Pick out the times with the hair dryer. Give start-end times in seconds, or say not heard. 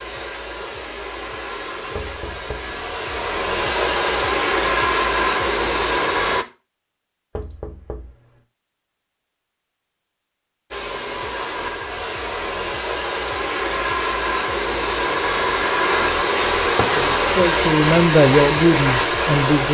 0.0-6.5, 10.7-19.6.